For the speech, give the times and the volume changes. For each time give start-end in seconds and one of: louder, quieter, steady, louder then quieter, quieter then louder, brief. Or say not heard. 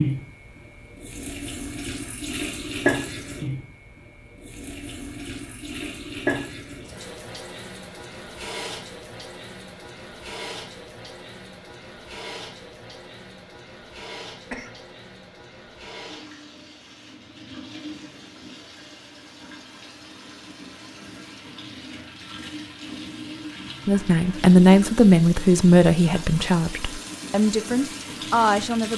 23.9-28.9 quieter.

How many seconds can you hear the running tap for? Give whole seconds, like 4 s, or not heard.
29 s.